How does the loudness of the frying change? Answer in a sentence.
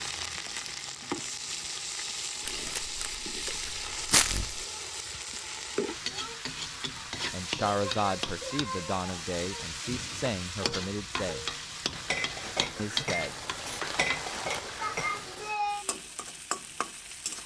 The volume of the frying stays about the same.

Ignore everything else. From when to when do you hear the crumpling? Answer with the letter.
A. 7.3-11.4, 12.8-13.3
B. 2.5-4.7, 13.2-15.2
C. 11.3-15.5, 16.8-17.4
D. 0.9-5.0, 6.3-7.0
B.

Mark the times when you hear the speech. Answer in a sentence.
You can hear the speech from 7.3 to 11.4 s and from 12.8 to 13.3 s.